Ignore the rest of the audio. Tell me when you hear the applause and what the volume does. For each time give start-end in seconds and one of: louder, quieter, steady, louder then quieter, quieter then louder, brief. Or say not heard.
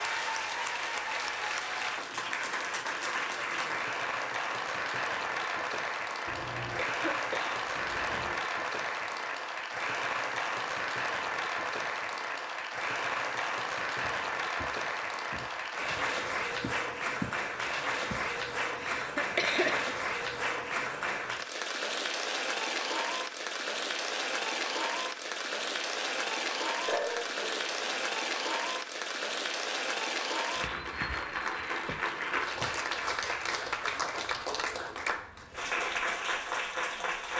0.0-37.3 steady.